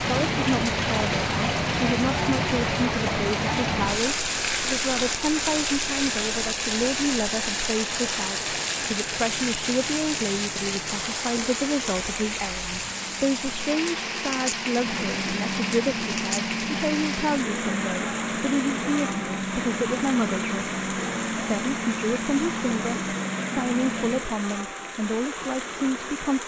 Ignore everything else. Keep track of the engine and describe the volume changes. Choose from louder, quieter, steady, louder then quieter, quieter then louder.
louder.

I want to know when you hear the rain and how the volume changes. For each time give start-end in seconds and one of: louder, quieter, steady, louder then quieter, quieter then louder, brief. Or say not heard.
0.0-26.4 quieter.